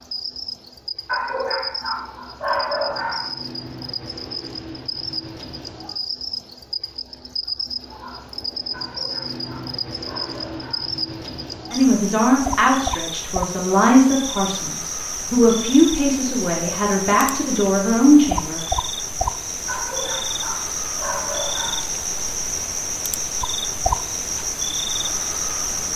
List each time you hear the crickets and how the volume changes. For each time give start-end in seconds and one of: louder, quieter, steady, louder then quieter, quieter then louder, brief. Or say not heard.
0.0-25.9 louder.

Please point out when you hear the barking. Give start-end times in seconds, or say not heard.
1.1-3.3, 8.7-10.9, 19.6-21.9.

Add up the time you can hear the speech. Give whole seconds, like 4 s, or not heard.
7 s.